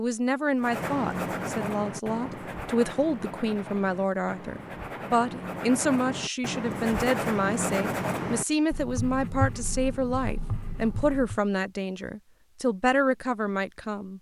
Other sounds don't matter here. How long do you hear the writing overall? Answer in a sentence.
You can hear the writing for 11 seconds altogether.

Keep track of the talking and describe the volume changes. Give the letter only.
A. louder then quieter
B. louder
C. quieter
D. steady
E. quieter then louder
D.